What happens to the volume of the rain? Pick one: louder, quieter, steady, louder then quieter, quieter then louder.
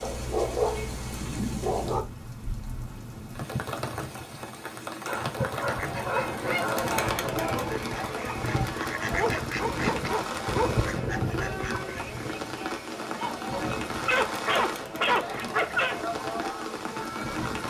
steady.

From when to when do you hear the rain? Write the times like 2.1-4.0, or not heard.
0.0-17.6.